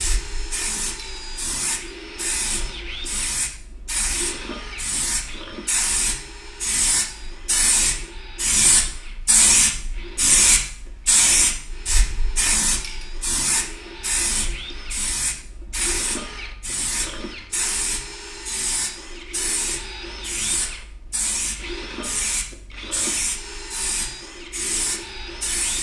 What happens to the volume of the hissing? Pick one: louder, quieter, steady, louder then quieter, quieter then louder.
louder then quieter.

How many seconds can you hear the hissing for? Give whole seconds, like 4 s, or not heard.
26 s.